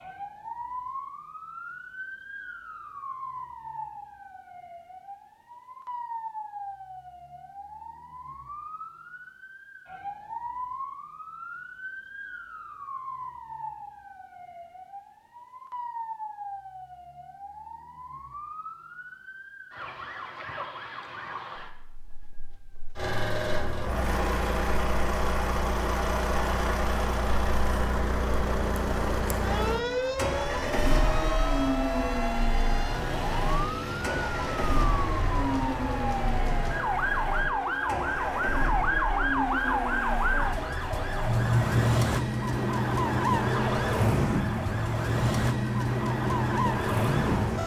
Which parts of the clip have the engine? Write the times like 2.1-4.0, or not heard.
22.9-47.6.